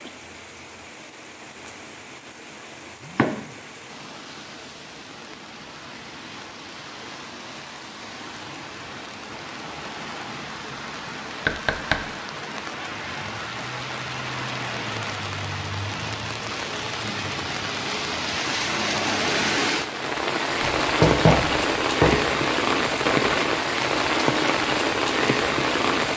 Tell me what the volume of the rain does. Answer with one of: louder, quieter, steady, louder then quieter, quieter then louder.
louder.